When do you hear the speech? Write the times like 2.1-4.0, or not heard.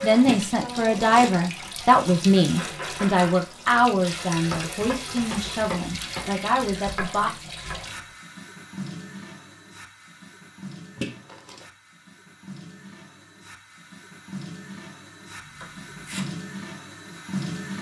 0.0-7.3.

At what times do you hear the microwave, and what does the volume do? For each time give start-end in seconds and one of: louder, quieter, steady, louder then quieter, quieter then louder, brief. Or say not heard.
not heard.